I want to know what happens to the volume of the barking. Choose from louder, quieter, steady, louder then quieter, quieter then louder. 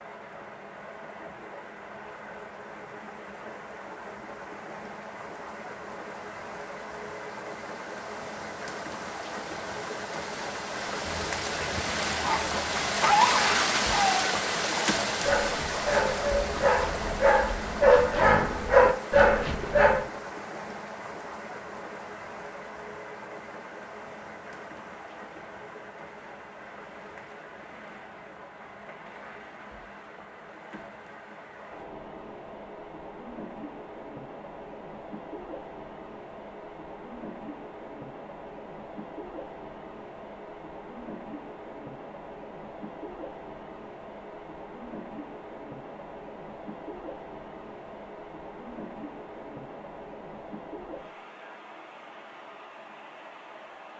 louder.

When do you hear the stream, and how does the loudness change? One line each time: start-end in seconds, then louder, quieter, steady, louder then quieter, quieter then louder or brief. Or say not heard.
0.0-53.9 louder then quieter.